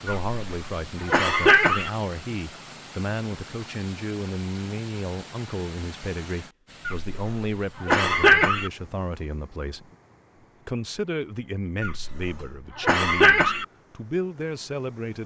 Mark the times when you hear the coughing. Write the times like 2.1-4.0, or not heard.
0.1-1.9, 6.8-8.7, 11.8-13.7.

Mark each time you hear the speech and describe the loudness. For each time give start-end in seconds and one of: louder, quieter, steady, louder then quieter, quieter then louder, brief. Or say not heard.
0.0-9.9 steady
10.7-15.2 quieter then louder.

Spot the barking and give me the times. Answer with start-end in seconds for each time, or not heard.
not heard.